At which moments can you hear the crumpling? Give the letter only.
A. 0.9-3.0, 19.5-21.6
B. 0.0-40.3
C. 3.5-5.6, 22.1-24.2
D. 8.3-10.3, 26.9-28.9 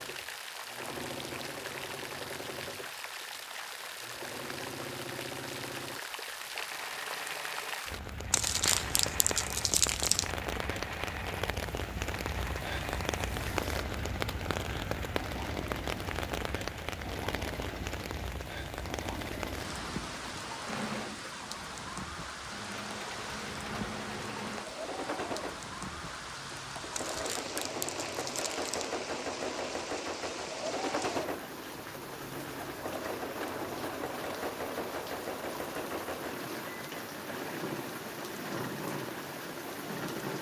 D.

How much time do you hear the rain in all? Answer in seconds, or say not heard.
40 s.